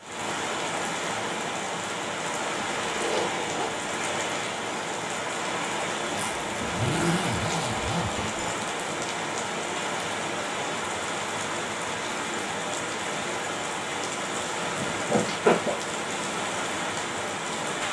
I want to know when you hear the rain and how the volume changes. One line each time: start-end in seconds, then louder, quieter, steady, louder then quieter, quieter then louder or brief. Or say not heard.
0.0-17.8 steady.